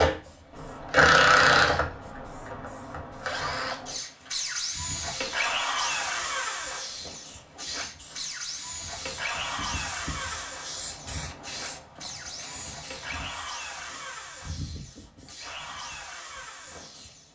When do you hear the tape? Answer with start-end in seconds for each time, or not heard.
not heard.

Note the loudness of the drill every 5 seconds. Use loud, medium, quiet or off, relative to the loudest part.
loud, medium, quiet, quiet.